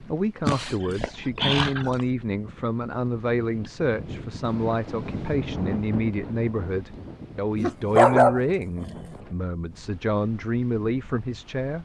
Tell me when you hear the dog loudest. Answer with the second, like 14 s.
8 s.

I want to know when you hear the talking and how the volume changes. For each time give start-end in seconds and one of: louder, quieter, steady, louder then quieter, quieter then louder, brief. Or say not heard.
0.0-11.8 steady.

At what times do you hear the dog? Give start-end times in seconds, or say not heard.
0.5-2.0, 7.5-9.1.